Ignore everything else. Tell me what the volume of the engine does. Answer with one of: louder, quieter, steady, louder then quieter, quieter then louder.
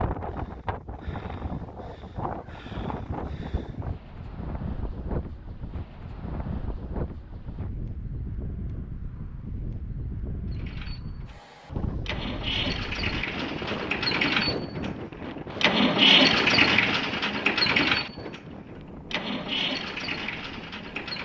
louder then quieter.